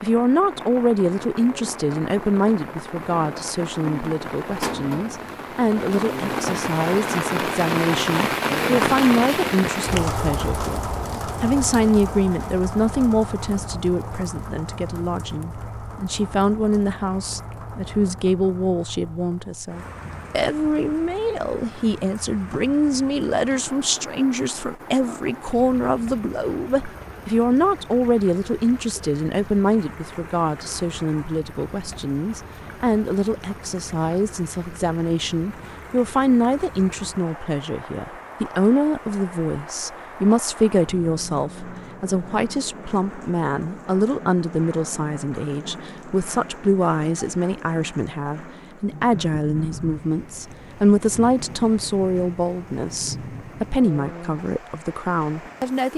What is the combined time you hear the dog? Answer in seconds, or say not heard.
not heard.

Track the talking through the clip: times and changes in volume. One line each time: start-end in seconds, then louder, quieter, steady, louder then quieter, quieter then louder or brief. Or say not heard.
0.0-55.9 steady.